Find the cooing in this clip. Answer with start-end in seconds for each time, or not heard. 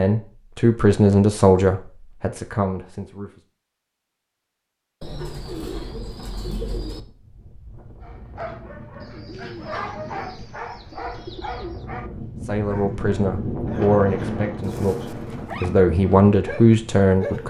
5.0-7.0, 9.0-11.8.